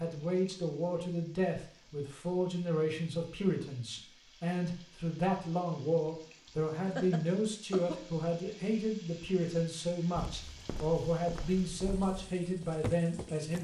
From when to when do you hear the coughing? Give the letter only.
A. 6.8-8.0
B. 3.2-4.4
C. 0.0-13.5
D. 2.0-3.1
A.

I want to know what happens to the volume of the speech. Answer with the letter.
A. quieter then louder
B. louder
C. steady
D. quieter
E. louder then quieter
C.